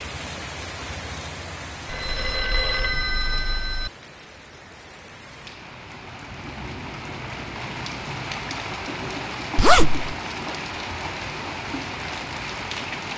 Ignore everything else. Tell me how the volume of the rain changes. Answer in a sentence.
The loudness of the rain goes down, then up.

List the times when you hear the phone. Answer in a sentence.
You can hear the phone from 1.9 to 3.9 s.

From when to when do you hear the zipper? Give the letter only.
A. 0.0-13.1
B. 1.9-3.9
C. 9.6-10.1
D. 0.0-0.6
C.